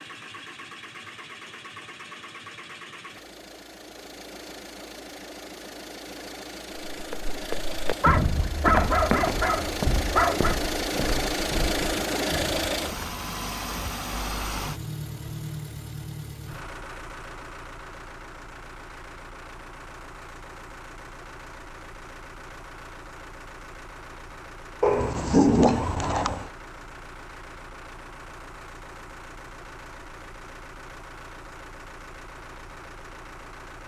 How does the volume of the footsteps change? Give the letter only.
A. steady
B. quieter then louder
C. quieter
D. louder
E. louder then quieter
C.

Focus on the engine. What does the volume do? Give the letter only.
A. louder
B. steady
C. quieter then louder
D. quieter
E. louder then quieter
E.